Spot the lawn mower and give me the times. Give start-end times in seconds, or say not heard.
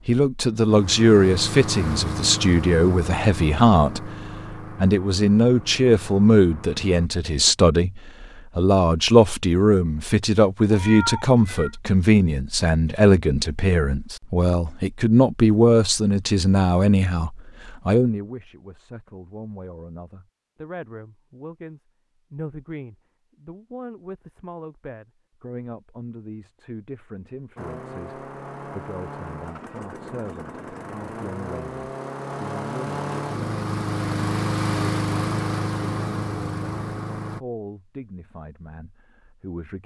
0.0-7.1, 27.6-37.4.